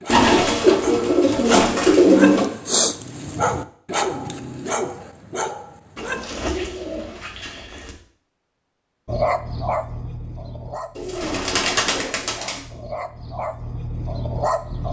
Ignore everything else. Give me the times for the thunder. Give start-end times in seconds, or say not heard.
not heard.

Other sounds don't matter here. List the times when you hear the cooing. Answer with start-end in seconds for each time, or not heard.
0.1-2.5, 6.0-8.0, 10.9-12.6.